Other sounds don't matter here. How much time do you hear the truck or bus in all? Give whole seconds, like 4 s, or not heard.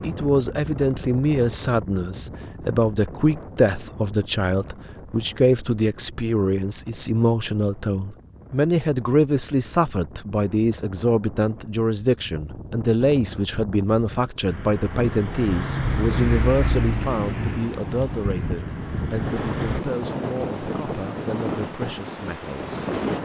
5 s.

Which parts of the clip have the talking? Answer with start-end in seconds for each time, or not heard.
0.0-22.8.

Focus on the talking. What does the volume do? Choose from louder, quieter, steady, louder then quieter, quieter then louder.
quieter.